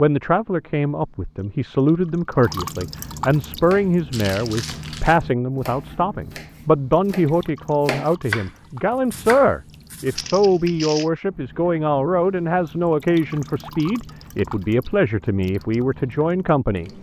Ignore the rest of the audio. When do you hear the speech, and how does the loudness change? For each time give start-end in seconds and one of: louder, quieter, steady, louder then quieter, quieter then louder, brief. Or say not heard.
0.0-16.9 steady.